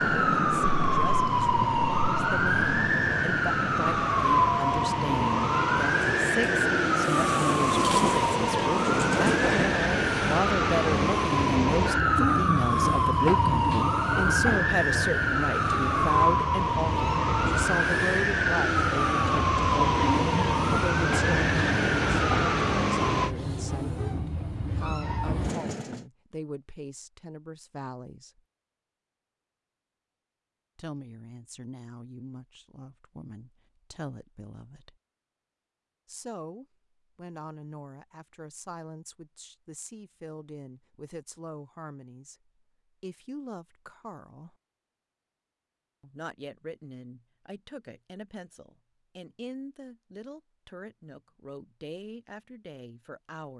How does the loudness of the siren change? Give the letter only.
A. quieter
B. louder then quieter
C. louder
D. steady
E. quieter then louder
D.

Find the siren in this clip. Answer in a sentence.
The siren can be heard from 0.0 to 23.4 s.